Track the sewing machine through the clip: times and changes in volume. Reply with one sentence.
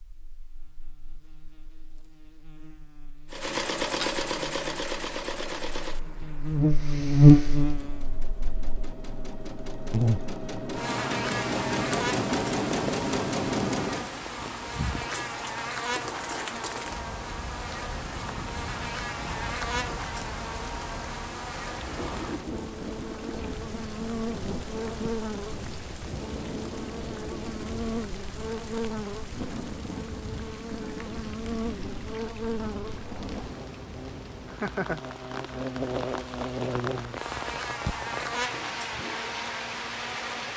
The sewing machine can be heard from 3.3 to 14.1 s, getting quieter then louder.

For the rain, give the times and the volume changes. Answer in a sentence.
The rain can be heard from 11.3 to 40.5 s, at a steady volume.